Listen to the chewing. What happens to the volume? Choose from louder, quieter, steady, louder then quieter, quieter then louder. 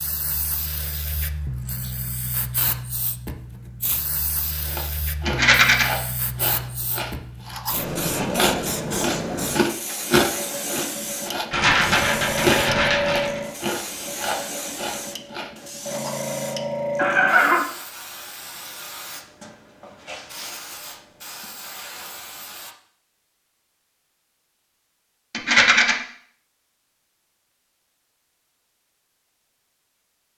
louder then quieter.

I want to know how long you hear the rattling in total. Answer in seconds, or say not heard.
3 s.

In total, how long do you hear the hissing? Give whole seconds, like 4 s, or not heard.
23 s.